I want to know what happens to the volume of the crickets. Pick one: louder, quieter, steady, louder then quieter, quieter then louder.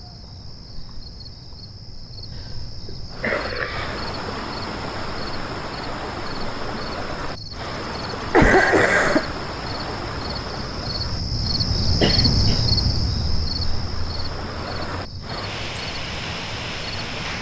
louder then quieter.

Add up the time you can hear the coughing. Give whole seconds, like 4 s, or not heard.
3 s.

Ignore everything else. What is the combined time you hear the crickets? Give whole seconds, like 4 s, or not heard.
17 s.